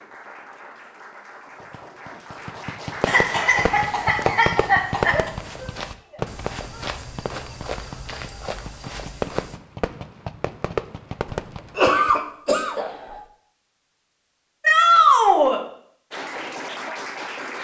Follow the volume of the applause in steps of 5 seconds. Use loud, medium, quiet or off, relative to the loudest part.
medium, off, off, loud.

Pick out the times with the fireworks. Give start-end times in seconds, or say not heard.
1.6-12.2.